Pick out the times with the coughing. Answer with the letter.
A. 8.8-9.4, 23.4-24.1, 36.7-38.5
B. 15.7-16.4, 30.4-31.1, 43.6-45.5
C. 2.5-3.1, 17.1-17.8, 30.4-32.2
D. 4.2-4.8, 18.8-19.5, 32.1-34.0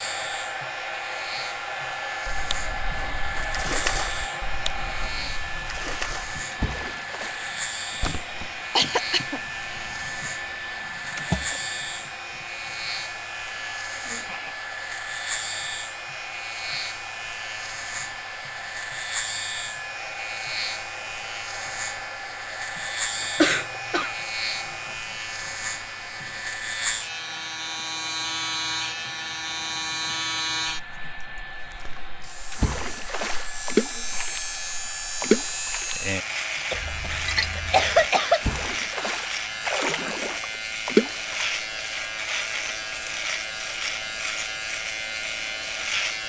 A.